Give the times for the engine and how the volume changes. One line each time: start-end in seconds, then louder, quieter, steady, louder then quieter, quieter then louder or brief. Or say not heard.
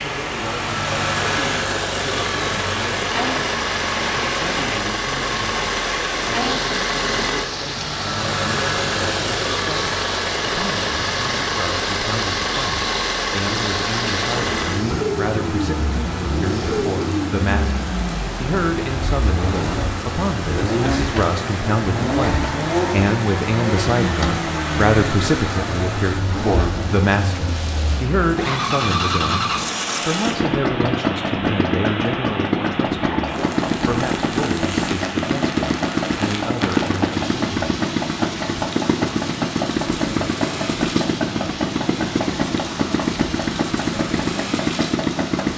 0.0-45.5 steady.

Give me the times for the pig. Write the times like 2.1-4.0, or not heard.
not heard.